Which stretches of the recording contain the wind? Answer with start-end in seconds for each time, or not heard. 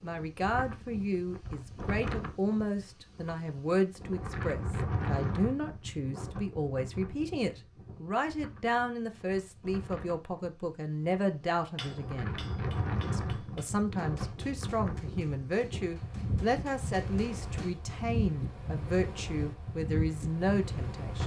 0.0-21.2.